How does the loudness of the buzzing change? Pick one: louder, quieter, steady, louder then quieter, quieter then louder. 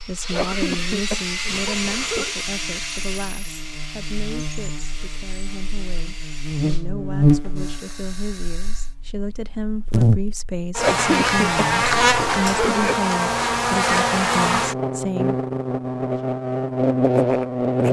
louder.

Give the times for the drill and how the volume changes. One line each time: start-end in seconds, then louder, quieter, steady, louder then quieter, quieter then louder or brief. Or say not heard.
0.0-8.9 quieter.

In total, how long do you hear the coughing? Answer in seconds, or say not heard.
4 s.